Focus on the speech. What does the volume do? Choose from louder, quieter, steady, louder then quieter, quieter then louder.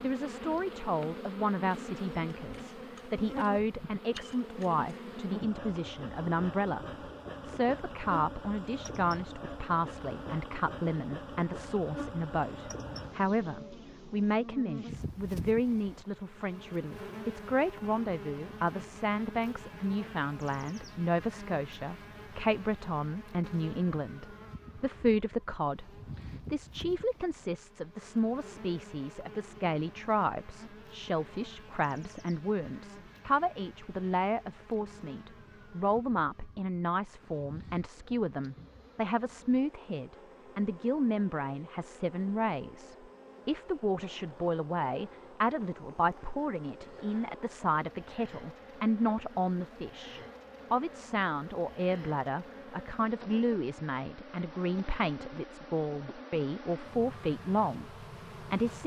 steady.